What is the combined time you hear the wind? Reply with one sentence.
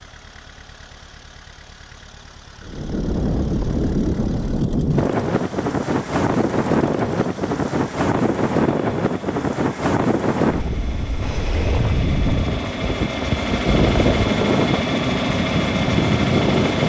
You can hear the wind for 14 seconds altogether.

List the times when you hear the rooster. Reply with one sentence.
You can't hear the rooster here.